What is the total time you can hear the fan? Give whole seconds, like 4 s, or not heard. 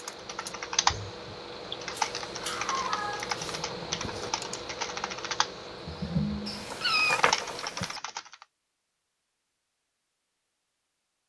8 s.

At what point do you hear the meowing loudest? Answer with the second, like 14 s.
7 s.